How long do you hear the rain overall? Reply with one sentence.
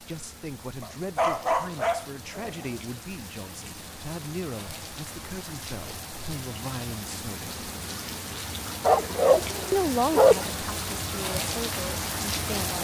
The rain can be heard for 13 seconds in total.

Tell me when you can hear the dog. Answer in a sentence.
The dog can be heard from 0.8 to 2.8 s and from 8.8 to 10.4 s.